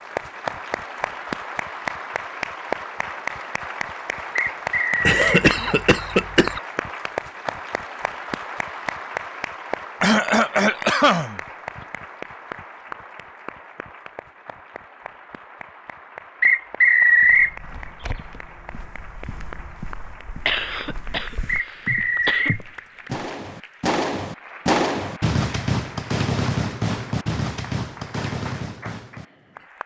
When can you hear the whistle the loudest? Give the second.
17 s.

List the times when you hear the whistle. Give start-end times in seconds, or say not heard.
4.3-5.5, 16.4-17.6, 21.4-22.6.